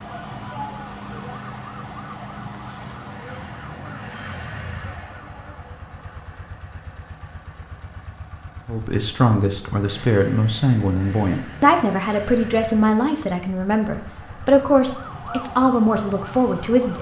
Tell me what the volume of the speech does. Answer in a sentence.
The loudness of the speech stays about the same.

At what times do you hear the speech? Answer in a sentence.
The speech can be heard from 8.7 to 16.9 s.